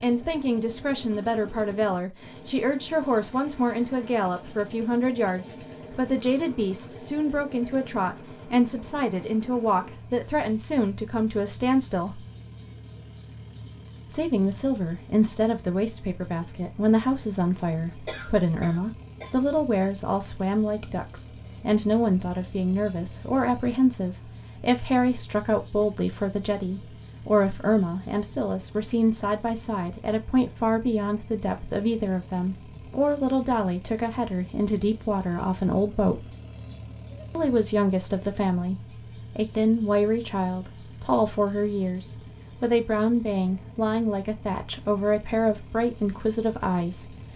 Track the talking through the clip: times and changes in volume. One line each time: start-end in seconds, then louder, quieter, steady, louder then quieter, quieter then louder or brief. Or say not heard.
0.0-12.2 steady
14.1-36.2 steady
37.4-47.1 steady.